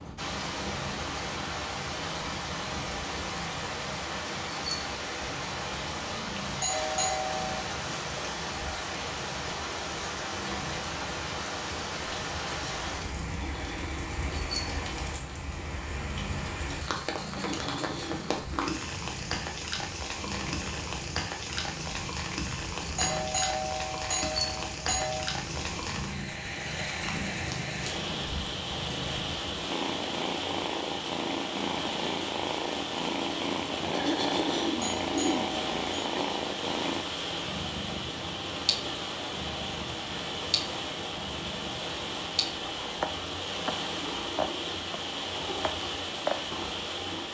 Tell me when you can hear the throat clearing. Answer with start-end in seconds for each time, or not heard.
13.3-14.1, 17.2-18.9, 33.8-36.3.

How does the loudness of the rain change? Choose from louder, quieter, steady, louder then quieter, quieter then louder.
steady.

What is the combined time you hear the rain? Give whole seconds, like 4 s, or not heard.
47 s.